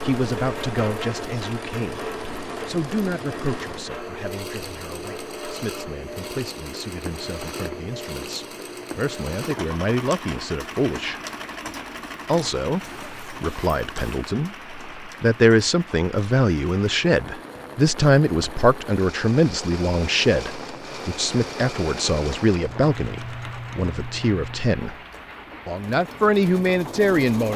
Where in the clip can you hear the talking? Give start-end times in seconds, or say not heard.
0.0-11.2, 12.2-24.9, 25.6-27.5.